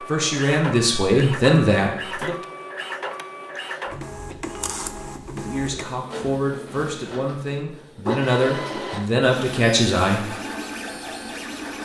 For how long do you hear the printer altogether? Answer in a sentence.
The printer can be heard for 12 seconds in total.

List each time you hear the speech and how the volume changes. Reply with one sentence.
You can hear the speech briefly from 0.0 to 2.4 s; and from 5.3 to 10.3 s, getting louder.